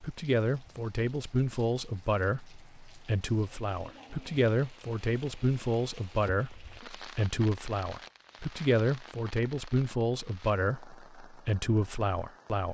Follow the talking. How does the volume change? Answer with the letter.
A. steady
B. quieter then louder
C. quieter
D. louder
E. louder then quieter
A.